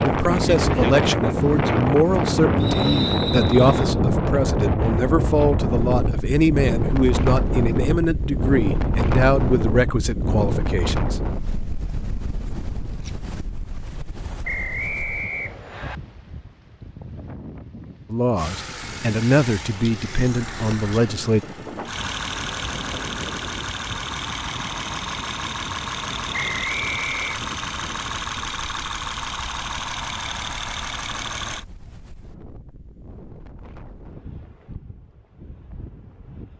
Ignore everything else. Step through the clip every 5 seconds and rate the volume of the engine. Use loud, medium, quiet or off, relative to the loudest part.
off, off, off, medium, loud, loud, loud, off.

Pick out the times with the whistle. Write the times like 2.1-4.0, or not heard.
2.6-3.8, 14.4-16.0, 26.3-27.4.